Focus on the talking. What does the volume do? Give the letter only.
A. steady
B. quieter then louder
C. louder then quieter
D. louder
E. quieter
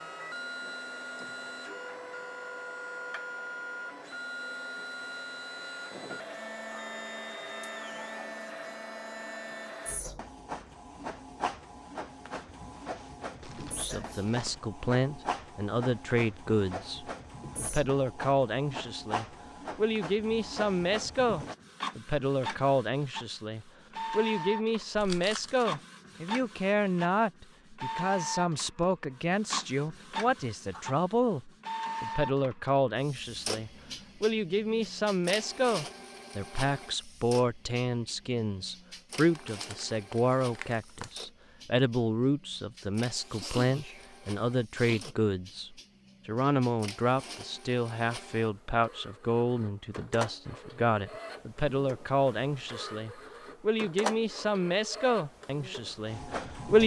A.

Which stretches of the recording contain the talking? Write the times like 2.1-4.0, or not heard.
13.6-56.8.